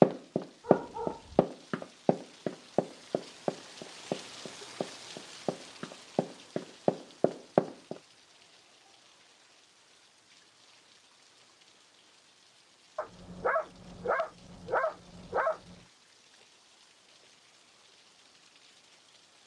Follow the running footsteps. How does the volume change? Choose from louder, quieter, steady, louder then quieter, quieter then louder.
quieter then louder.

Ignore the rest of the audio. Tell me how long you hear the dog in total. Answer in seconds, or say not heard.
4 s.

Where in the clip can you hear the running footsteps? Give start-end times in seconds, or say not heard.
0.0-8.0.